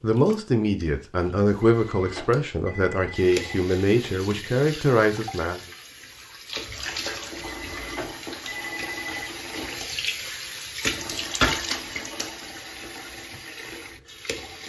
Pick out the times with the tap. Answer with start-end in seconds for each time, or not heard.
0.1-14.6.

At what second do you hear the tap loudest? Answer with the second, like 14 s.
11 s.